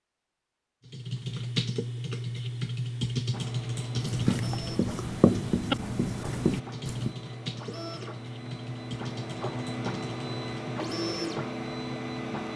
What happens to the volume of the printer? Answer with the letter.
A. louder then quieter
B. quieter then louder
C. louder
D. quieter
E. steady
C.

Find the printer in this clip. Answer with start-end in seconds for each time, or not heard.
3.3-12.5.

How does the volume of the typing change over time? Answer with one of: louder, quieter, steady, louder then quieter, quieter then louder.
quieter.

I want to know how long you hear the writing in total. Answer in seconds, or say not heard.
3 s.